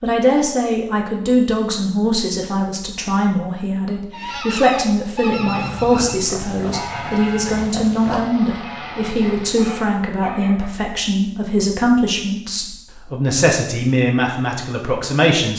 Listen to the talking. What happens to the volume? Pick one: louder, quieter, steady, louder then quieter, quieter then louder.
steady.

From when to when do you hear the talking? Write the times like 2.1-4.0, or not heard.
0.0-15.5.